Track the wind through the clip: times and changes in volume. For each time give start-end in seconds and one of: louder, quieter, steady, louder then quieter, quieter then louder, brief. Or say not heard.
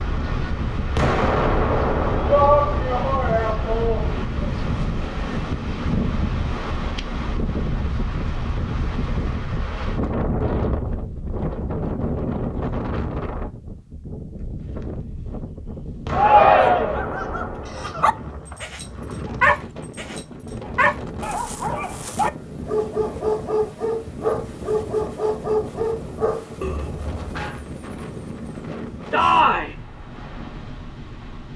0.0-31.5 quieter.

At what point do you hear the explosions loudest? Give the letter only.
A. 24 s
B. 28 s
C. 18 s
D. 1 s
D.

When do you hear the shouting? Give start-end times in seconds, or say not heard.
2.2-4.3, 16.1-17.0, 29.1-29.8.